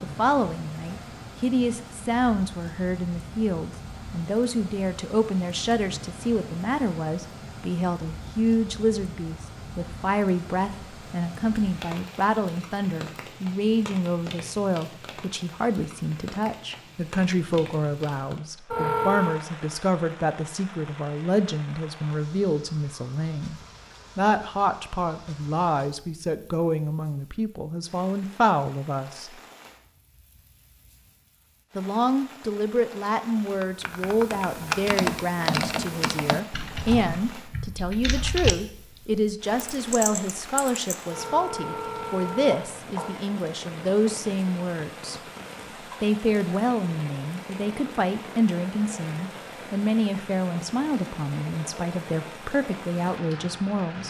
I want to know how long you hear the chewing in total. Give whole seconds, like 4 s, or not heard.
not heard.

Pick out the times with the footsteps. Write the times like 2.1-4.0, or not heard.
not heard.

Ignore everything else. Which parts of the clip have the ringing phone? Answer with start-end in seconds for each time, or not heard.
18.7-19.4, 41.1-43.1.